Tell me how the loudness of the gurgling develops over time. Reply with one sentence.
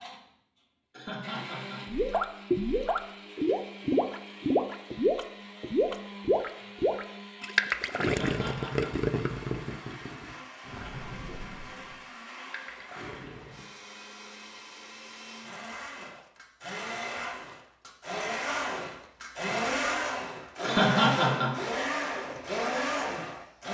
The loudness of the gurgling goes down.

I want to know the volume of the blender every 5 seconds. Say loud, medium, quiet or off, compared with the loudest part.
quiet, quiet, quiet, loud, loud.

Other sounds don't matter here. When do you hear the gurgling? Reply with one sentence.
You can hear the gurgling from 1.9 to 13.7 s.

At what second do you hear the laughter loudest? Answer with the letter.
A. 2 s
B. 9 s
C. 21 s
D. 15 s
C.